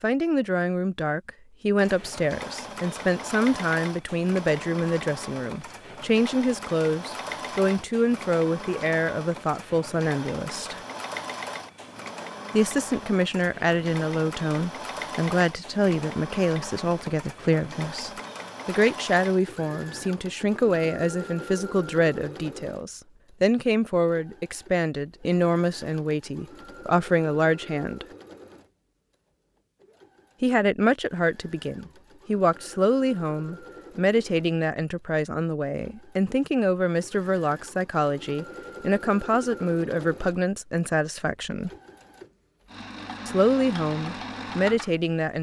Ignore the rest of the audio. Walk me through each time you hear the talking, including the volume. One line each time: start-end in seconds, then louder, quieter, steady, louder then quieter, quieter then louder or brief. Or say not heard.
0.0-10.8 steady
12.5-28.1 steady
30.4-41.7 steady
43.2-45.3 brief.